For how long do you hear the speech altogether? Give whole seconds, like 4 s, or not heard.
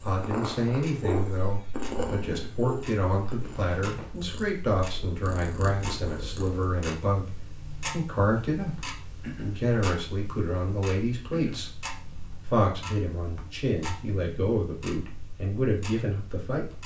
16 s.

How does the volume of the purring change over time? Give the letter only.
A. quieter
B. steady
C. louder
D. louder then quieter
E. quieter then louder
E.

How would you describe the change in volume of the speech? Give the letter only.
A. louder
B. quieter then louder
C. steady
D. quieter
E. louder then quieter
C.